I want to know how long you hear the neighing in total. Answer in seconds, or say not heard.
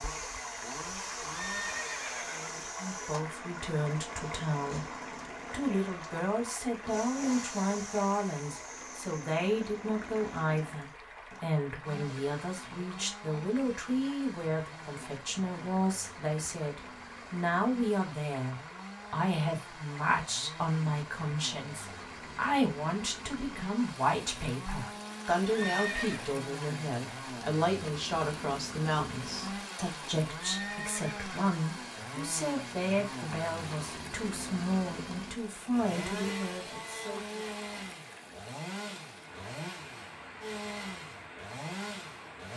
3 s.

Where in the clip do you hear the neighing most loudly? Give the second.
26 s.